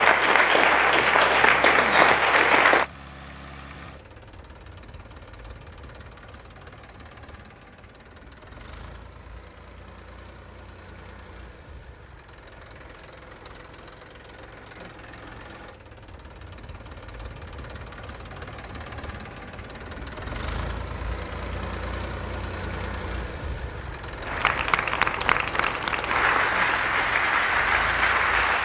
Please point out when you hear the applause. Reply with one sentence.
You can hear the applause from 0.0 to 2.9 s and from 24.2 to 28.6 s.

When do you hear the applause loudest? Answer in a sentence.
The volume of the applause peaks at 2 seconds.